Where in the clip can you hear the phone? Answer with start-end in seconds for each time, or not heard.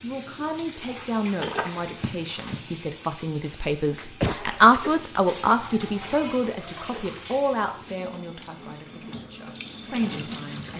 1.4-2.6, 5.5-6.5.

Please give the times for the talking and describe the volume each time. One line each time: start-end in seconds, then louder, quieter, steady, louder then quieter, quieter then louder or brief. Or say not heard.
0.0-10.7 louder then quieter.